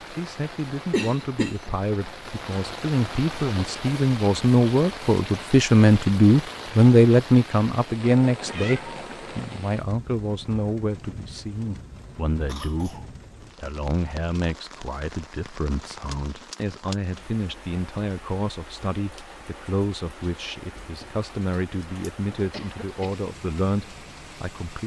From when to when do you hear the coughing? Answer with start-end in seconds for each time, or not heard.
0.9-1.7, 12.4-13.1, 22.5-23.2.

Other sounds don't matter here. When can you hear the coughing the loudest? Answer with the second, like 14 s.
1 s.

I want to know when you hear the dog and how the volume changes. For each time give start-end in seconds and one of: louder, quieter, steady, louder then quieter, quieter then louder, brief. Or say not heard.
not heard.